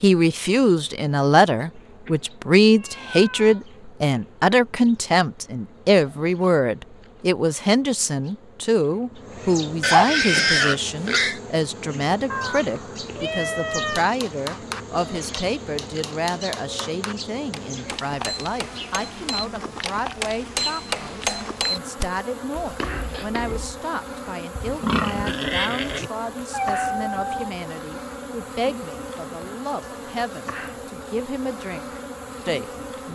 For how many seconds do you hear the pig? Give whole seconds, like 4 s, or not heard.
3 s.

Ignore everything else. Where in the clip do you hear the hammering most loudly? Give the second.
21 s.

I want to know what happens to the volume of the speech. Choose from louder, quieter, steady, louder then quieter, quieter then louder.
quieter.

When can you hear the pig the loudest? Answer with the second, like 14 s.
10 s.